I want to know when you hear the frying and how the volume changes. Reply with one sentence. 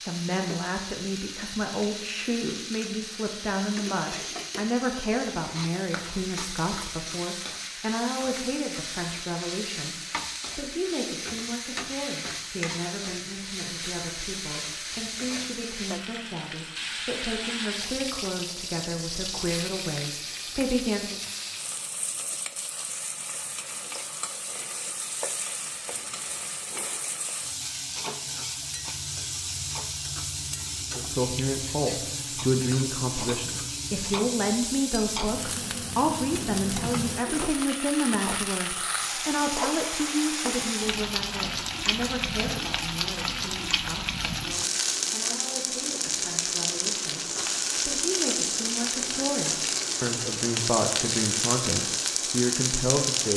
The frying can be heard from 0.0 to 53.3 s, getting louder.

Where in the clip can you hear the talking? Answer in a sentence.
You can hear the talking from 0.0 to 21.2 s and from 30.9 to 53.3 s.